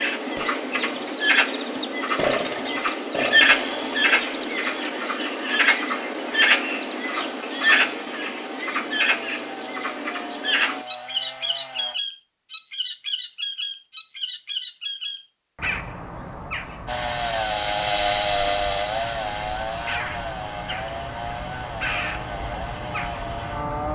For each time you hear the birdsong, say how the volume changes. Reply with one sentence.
You can hear the birdsong from 0.0 to 23.8 s, getting quieter.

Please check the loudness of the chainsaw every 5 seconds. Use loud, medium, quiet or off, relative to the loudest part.
medium, quiet, quiet, loud, medium.